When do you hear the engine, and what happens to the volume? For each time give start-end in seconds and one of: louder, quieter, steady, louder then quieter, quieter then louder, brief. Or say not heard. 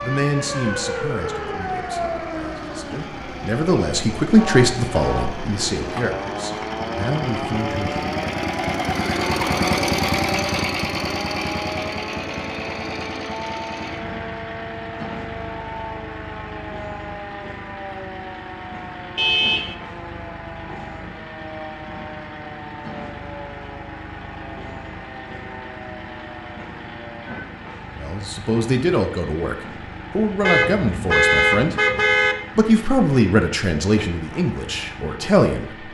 0.0-35.8 louder then quieter.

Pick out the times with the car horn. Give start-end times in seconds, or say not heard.
4.3-5.3, 19.1-19.8, 30.4-32.4.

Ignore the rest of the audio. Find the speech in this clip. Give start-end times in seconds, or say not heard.
0.0-8.0, 28.0-31.8, 32.5-35.6.